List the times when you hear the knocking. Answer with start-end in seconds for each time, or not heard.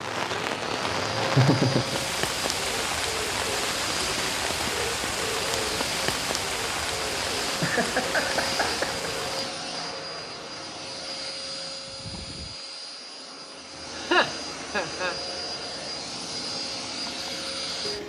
not heard.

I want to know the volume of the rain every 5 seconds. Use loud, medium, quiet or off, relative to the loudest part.
loud, loud, off, off.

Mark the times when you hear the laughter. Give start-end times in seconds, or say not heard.
1.4-2.0, 7.6-9.1, 13.9-15.2.